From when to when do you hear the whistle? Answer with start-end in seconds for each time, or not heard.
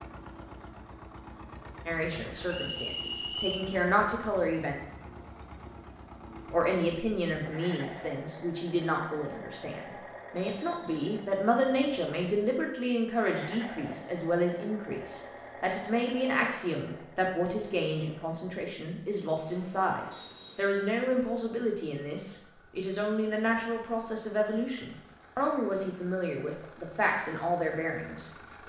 2.5-3.7, 10.3-11.2, 20.1-20.8.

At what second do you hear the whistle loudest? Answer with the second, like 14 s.
3 s.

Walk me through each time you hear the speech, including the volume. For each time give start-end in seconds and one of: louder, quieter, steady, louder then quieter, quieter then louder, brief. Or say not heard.
1.9-4.8 brief
6.5-28.6 steady.